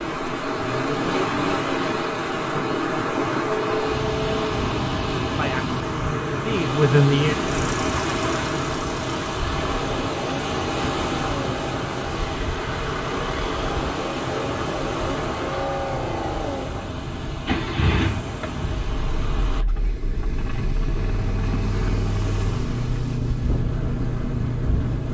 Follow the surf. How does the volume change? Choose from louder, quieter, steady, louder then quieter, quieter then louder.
quieter.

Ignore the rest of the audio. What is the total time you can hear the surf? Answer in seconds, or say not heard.
25 s.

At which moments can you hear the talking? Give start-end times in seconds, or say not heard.
5.3-7.3.